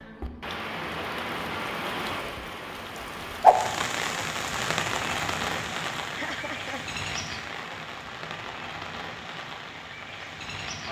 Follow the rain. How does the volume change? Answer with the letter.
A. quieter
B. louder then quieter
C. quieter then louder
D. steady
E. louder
B.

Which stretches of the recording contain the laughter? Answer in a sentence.
You can hear the laughter from 6.1 to 6.8 s.